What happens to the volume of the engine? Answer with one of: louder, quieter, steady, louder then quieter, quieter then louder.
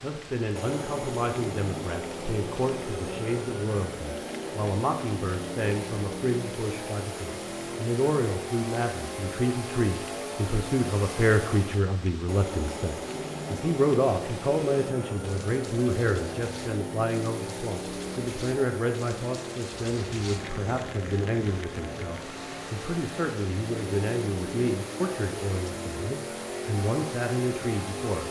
steady.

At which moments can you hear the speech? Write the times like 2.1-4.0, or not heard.
0.0-28.2.